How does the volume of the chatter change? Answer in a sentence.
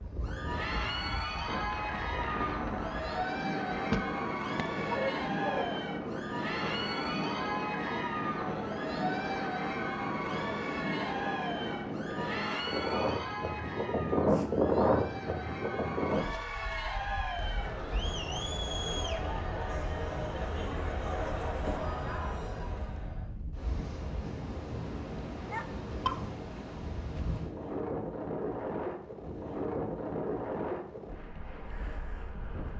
The volume of the chatter stays about the same.